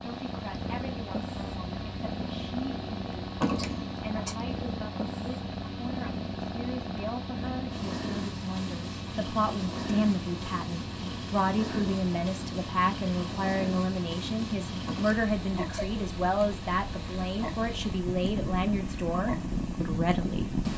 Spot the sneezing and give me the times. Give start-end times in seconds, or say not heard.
3.4-4.3, 14.8-15.9.